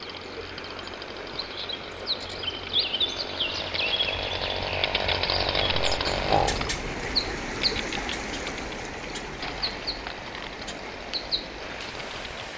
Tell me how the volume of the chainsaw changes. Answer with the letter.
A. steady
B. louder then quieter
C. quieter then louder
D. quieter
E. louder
B.